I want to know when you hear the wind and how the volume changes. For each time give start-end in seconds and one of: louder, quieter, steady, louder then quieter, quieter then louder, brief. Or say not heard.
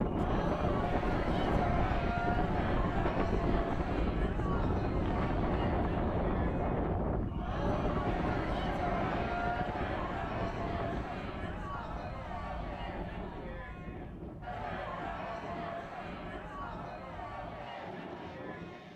0.0-18.9 quieter.